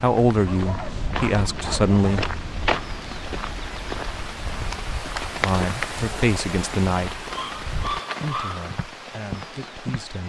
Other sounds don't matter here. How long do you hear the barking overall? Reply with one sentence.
The barking can be heard for 3 seconds in total.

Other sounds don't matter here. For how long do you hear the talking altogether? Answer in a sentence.
The talking can be heard for 6 seconds in total.